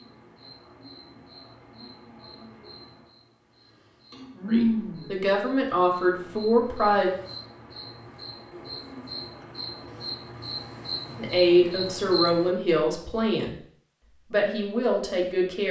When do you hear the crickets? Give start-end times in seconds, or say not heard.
0.0-12.5.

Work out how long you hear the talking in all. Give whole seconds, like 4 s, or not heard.
6 s.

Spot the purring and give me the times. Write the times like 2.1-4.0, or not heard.
not heard.